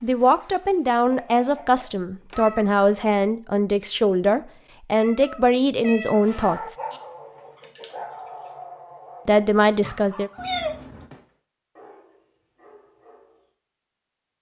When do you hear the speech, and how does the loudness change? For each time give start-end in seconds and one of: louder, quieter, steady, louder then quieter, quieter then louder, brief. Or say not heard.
0.0-6.8 steady
9.2-10.3 brief.